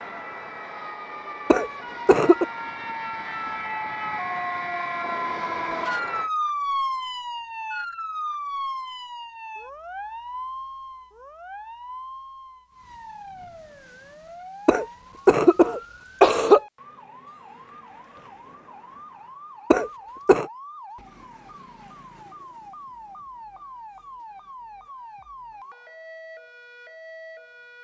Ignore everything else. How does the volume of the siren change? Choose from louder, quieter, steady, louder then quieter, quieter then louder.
quieter.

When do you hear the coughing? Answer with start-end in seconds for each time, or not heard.
1.5-2.5, 14.7-16.6, 19.7-20.4.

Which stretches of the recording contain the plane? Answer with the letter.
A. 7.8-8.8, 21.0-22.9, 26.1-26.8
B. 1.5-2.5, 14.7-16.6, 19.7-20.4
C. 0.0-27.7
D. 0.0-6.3
D.